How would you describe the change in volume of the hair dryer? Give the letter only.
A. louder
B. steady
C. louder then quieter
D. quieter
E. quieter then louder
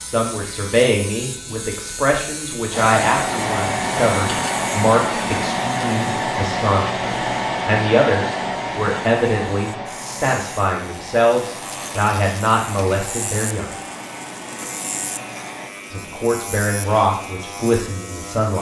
D.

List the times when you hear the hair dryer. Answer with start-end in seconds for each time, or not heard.
2.7-15.8.